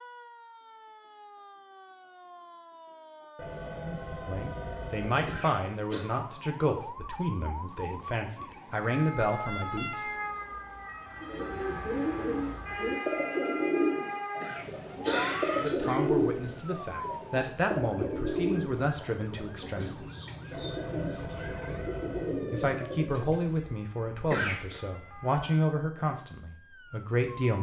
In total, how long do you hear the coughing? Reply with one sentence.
The coughing can be heard for 3 seconds in total.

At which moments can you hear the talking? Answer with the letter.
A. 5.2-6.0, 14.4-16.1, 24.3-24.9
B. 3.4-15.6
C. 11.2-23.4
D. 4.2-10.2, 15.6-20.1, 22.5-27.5
D.